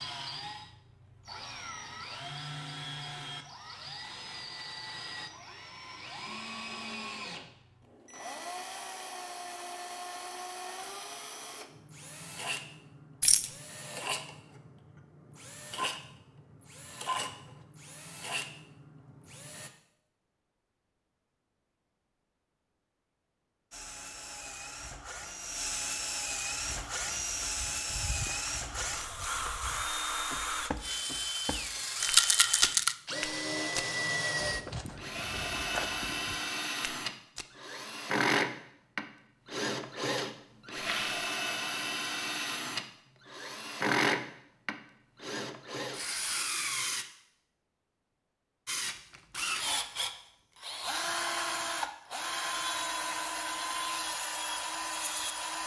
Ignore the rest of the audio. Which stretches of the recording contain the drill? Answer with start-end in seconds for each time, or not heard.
0.0-19.7, 23.7-47.0, 48.6-55.6.